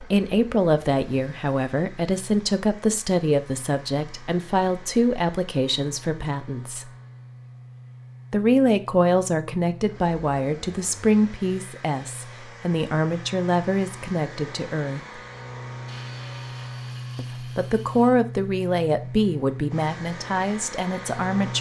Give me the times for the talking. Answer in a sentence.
The talking can be heard from 0.0 to 6.9 s, from 8.3 to 15.2 s and from 17.1 to 21.5 s.